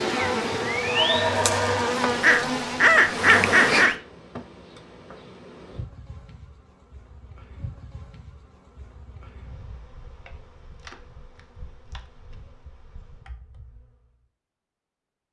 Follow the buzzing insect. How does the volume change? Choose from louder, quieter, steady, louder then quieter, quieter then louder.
quieter.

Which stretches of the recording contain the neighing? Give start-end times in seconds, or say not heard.
0.8-1.9.